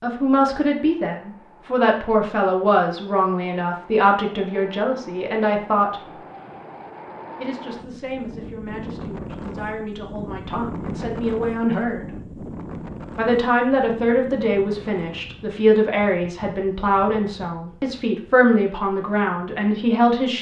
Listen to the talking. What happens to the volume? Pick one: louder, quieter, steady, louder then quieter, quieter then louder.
quieter then louder.